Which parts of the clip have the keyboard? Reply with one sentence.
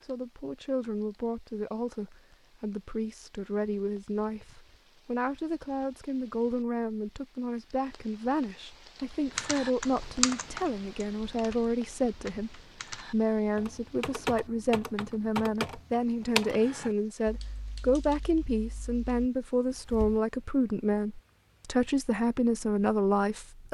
The keyboard can be heard from 9.3 to 20.2 s.